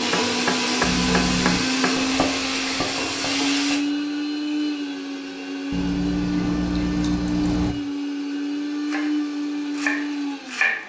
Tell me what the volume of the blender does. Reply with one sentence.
The loudness of the blender stays about the same.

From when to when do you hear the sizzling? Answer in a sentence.
You can hear the sizzling from 0.0 to 3.8 s.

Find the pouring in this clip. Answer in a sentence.
You can hear the pouring from 0.8 to 1.6 s and from 5.7 to 7.8 s.